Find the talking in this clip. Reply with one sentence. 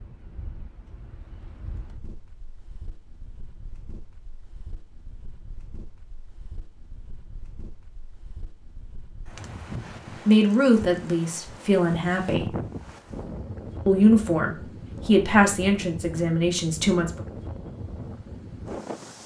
You can hear the talking from 10.2 to 12.5 s and from 13.8 to 17.2 s.